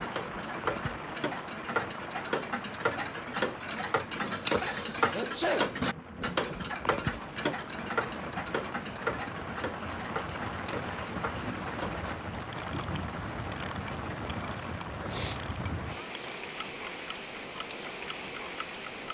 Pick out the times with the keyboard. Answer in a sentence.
The keyboard can't be heard in this clip.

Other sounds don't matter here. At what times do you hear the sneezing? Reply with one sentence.
The sneezing can be heard from 5.1 to 5.8 s and from 15.0 to 15.4 s.